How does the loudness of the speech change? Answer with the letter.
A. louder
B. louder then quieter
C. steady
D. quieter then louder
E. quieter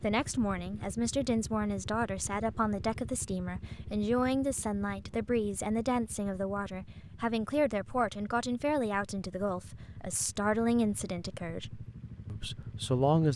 C.